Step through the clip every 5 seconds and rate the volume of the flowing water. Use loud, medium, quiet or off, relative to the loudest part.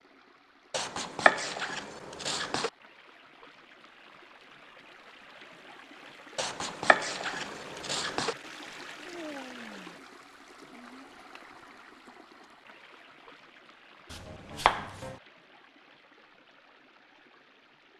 medium, loud, medium, quiet.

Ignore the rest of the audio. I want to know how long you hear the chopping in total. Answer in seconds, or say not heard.
5 s.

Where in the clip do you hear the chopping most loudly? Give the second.
1 s.